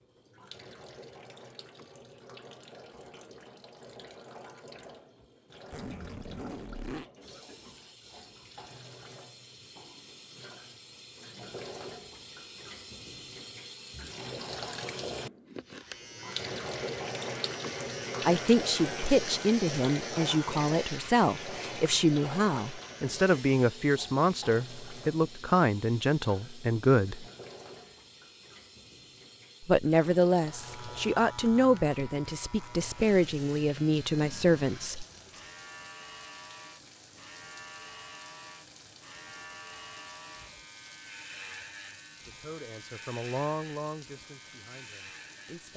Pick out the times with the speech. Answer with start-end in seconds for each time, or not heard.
18.2-27.2, 29.6-35.0, 42.2-45.7.